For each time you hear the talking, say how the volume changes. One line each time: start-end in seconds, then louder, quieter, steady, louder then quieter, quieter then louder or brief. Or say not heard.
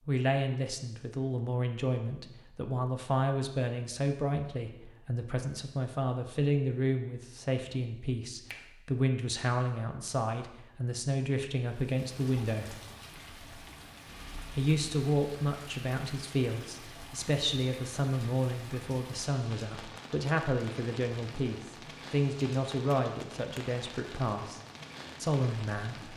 0.1-12.8 steady
14.5-24.6 steady
25.2-26.1 brief.